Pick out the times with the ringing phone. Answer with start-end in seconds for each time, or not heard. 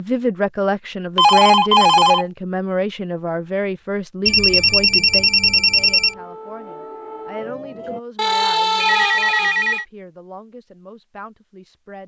1.1-2.2, 4.2-6.2, 8.2-9.8.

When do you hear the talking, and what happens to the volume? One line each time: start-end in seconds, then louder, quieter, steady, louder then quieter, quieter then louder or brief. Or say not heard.
0.0-12.0 quieter.